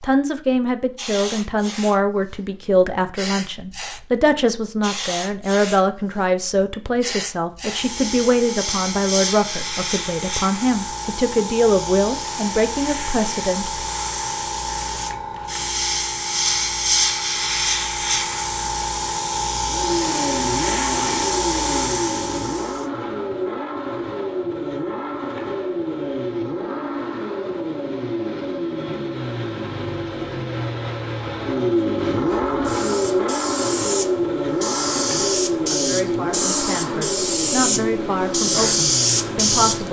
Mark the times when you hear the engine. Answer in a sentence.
You can hear the engine from 19.6 to 39.8 s.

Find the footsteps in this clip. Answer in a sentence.
You can't hear the footsteps here.